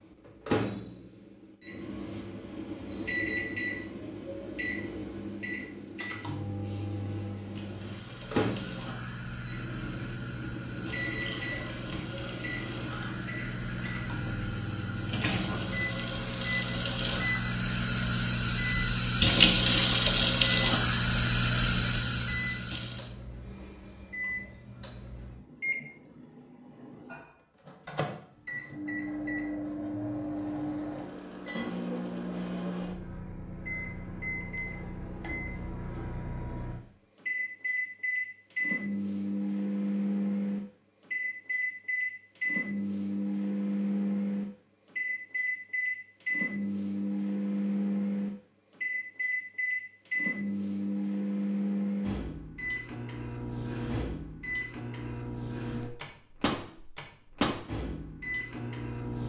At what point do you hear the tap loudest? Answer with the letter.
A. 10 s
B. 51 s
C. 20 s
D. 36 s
C.